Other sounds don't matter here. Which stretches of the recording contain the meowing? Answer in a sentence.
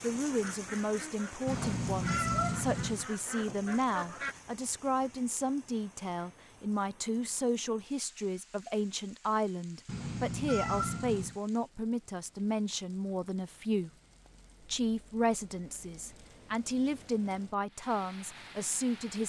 You can hear the meowing from 1.4 to 3.0 s and from 9.8 to 11.4 s.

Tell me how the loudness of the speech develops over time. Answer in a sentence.
The volume of the speech stays about the same.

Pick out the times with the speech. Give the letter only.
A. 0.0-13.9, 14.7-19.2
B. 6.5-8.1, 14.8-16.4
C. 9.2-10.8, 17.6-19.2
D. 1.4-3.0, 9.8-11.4
A.